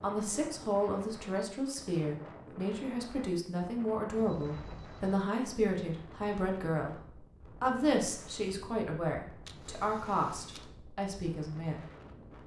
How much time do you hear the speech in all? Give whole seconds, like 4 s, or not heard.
11 s.